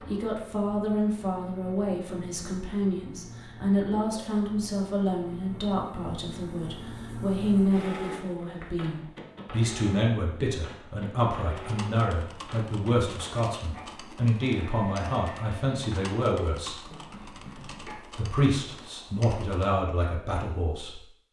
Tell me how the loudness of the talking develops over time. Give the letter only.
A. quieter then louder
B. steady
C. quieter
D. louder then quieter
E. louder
B.